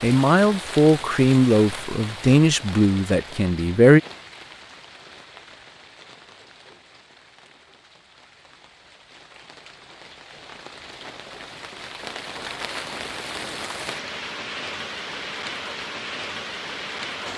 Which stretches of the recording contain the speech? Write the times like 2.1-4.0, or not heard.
0.0-4.0.